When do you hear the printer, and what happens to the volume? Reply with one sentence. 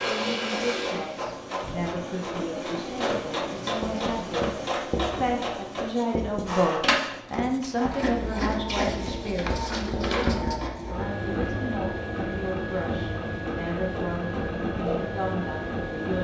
The printer can be heard from 0.0 to 16.2 s, at a steady volume.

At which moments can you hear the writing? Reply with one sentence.
The writing can be heard from 3.6 to 10.7 s.